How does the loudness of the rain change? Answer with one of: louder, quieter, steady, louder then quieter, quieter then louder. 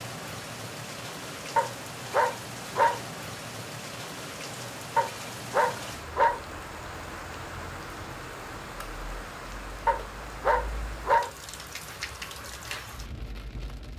steady.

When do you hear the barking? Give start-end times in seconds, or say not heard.
1.6-3.0, 5.0-6.4, 9.8-11.3.